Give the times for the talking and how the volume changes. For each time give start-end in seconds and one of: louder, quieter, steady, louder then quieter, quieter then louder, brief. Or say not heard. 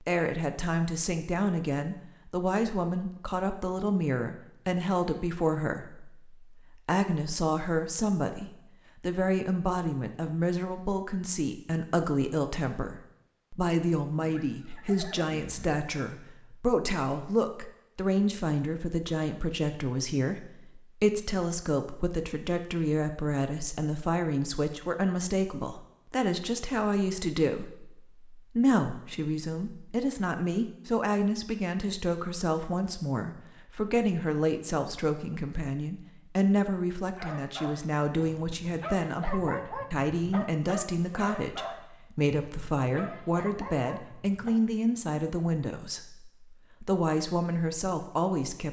0.0-48.6 steady.